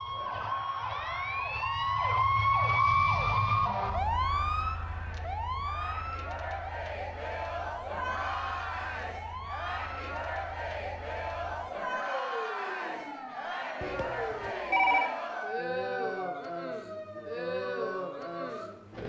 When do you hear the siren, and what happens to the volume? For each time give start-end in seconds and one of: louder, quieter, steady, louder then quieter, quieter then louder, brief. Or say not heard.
0.0-19.0 quieter.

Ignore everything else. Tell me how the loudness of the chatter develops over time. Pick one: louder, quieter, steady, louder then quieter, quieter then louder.
louder.